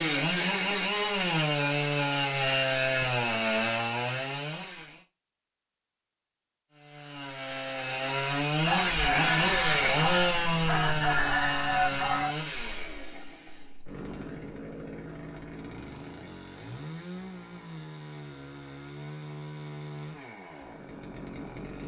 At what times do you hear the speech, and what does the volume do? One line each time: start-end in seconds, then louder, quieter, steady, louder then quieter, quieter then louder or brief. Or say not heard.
not heard.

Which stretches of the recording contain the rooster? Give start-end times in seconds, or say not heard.
8.6-12.3.